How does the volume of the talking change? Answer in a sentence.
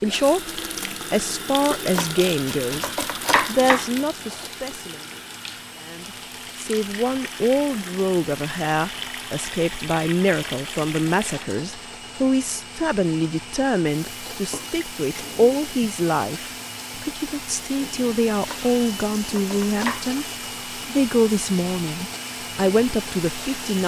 The volume of the talking stays about the same.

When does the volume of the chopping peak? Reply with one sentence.
The volume of the chopping peaks at 3 seconds.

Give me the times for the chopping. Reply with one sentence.
You can hear the chopping from 1.9 to 4.5 s and from 18.4 to 20.2 s.